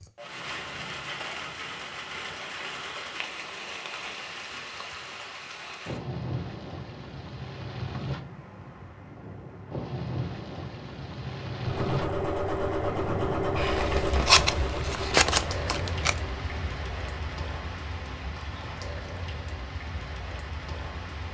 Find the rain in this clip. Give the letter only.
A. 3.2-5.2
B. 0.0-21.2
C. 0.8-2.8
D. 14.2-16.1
B.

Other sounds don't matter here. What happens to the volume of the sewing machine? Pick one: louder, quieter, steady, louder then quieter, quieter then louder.
quieter.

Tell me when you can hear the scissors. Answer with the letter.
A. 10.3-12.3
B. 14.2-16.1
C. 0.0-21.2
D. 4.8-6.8
B.